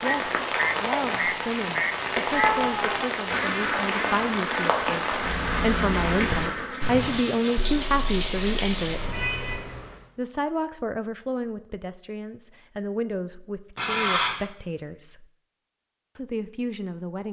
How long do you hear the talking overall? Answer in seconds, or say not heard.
15 s.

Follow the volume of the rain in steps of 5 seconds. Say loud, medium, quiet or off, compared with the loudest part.
loud, loud, off, off.